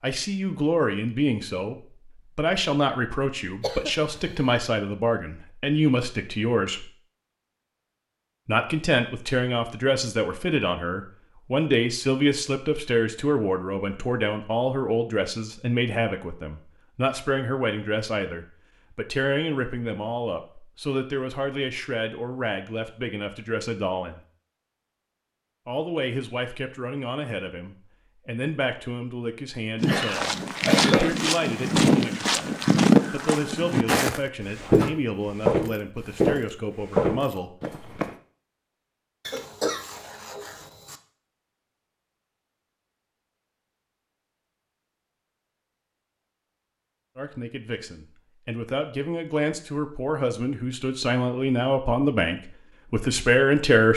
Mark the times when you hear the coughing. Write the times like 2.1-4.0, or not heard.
3.6-4.3, 29.9-31.1, 39.2-41.0.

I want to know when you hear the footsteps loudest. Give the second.
33 s.